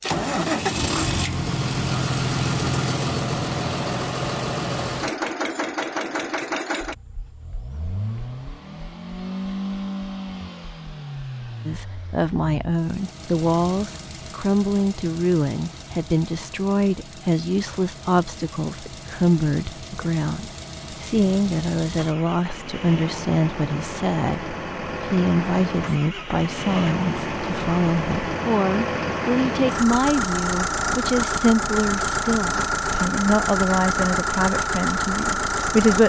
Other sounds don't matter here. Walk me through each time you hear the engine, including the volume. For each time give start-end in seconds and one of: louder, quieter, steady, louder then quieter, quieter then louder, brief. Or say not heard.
0.0-36.0 quieter then louder.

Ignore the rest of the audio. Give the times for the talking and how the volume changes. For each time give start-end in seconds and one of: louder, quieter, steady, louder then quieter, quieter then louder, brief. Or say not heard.
11.7-36.0 steady.